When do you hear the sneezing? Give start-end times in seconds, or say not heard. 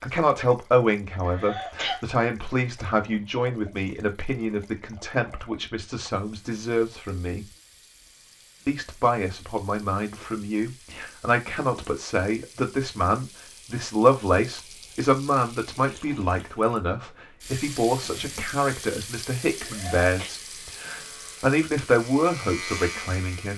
1.2-2.0, 19.6-20.3.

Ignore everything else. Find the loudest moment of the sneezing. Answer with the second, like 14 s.
2 s.